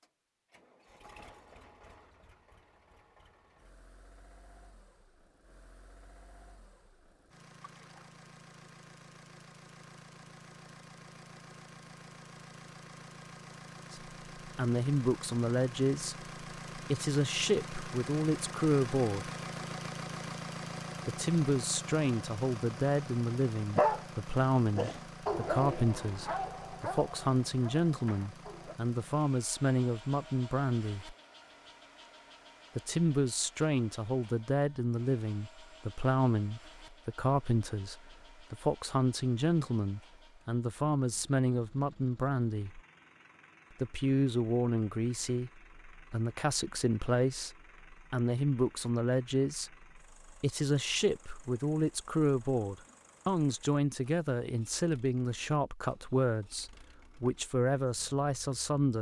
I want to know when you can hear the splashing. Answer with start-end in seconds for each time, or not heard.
7.6-8.2.